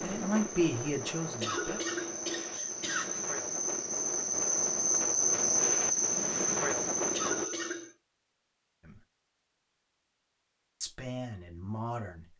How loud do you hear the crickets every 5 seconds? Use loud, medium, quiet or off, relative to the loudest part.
medium, loud, off.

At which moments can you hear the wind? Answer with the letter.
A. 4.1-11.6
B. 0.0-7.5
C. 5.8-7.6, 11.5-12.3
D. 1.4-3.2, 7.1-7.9
B.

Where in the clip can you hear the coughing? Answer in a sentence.
The coughing can be heard from 1.4 to 3.2 s and from 7.1 to 7.9 s.